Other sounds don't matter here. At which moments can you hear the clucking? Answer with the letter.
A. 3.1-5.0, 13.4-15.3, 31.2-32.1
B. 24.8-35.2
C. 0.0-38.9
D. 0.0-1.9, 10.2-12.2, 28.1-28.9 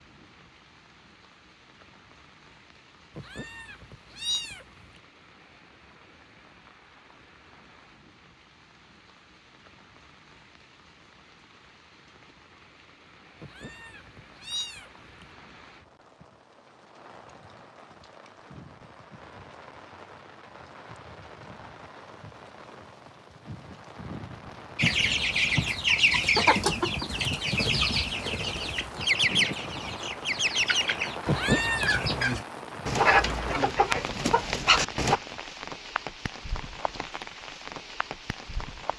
B.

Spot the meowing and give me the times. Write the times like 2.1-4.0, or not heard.
3.1-5.0, 13.4-15.3, 31.2-32.1.